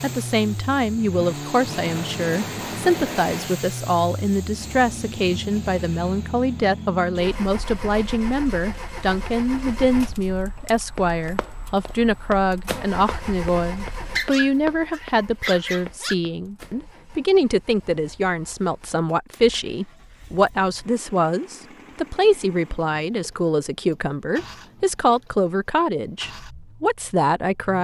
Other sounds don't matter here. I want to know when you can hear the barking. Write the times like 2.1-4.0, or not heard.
14.2-16.1.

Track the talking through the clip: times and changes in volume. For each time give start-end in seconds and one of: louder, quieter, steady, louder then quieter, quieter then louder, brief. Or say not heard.
0.0-27.7 steady.